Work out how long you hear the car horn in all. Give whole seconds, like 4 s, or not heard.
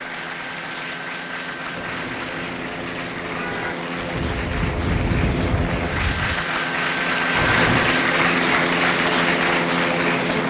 3 s.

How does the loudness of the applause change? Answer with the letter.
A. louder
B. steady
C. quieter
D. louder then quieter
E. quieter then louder
A.